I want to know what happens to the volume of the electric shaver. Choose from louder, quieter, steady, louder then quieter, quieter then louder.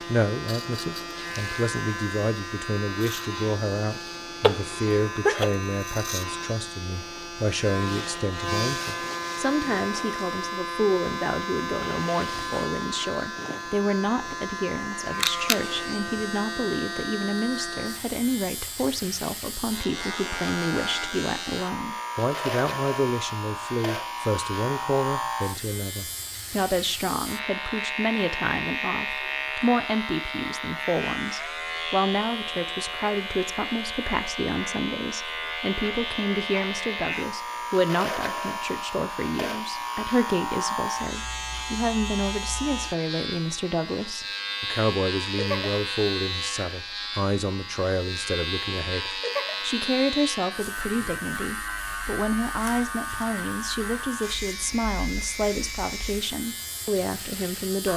steady.